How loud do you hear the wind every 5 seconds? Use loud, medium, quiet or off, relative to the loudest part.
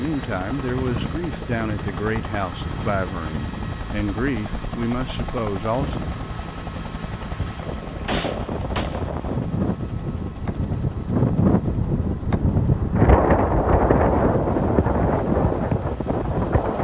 quiet, medium, loud, loud.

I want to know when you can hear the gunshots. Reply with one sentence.
You can hear the gunshots from 7.6 to 9.1 s.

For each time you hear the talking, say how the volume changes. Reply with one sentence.
The talking can be heard from 0.0 to 6.0 s, at a steady volume.